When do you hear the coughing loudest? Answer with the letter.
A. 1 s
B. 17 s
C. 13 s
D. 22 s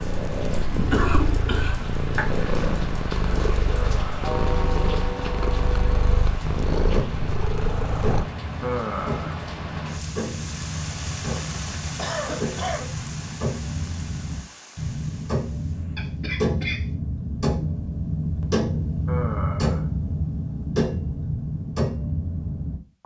A.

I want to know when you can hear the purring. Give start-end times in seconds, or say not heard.
0.0-8.3.